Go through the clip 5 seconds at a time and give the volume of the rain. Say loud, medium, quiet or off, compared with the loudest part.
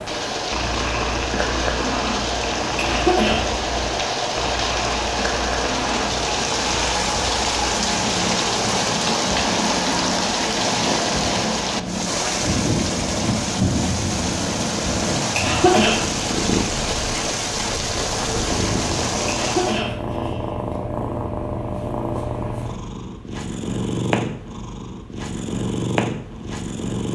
loud, loud, loud, loud, off, off.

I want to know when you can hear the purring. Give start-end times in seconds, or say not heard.
0.0-27.1.